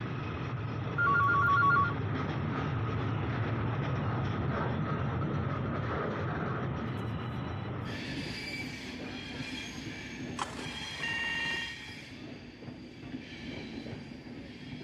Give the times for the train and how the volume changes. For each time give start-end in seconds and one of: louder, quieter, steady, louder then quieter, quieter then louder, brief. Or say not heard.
0.0-14.7 quieter.